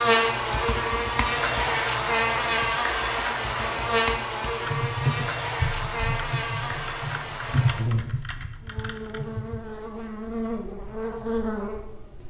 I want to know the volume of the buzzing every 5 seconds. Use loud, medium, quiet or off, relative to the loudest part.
loud, medium, medium.